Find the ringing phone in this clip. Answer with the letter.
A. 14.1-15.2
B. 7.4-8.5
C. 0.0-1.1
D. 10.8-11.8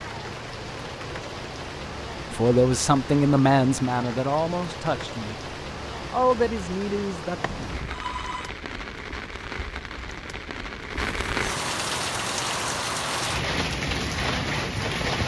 B.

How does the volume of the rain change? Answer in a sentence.
The volume of the rain goes up.